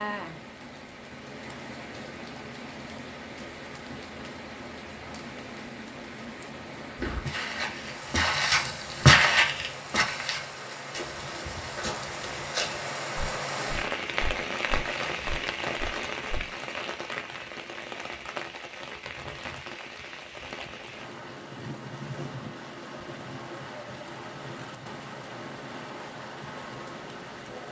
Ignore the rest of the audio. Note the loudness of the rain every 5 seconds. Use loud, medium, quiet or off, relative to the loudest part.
medium, medium, loud, loud, medium, medium.